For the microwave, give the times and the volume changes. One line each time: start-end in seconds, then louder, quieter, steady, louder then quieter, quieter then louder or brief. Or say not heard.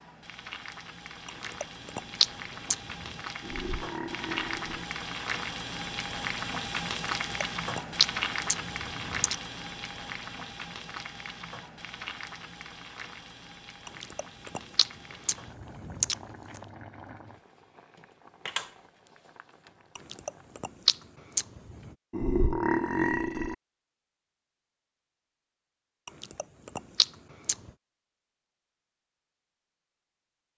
not heard.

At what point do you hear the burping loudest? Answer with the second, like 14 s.
23 s.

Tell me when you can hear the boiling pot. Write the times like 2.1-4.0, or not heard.
0.0-20.6.